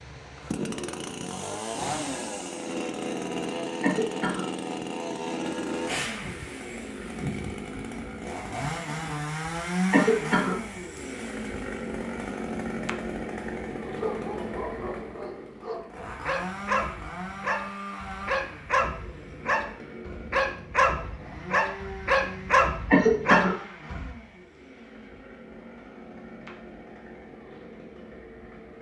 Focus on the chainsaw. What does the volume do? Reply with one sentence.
The loudness of the chainsaw goes down.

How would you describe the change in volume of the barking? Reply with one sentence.
The loudness of the barking goes up.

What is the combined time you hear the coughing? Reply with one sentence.
The coughing can be heard for 2 seconds in total.